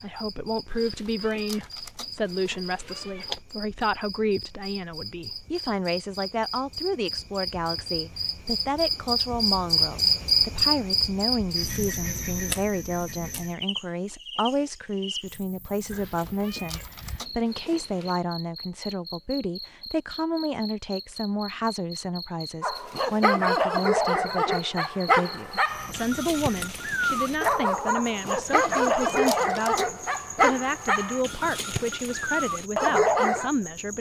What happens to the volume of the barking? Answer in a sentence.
The volume of the barking stays about the same.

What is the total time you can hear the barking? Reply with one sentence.
You can hear the barking for 11 seconds altogether.